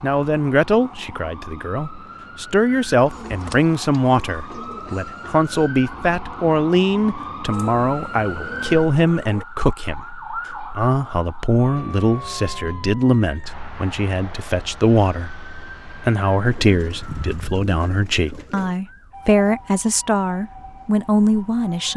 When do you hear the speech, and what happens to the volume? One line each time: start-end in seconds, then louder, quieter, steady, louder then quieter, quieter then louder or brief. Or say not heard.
0.0-21.9 steady.